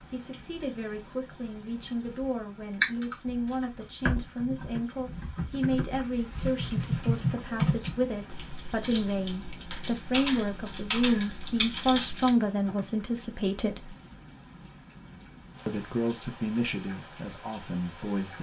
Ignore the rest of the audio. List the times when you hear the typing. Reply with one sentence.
The typing can be heard from 2.8 to 12.8 s.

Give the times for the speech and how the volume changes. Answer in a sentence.
The speech can be heard from 0.1 to 13.9 s, getting louder; and briefly from 15.7 to 18.3 s.